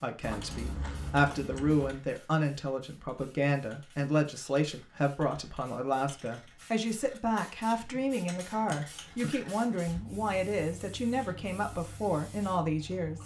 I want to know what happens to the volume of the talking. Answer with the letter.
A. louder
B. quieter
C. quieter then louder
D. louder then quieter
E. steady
E.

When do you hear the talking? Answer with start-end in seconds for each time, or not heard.
0.0-13.2.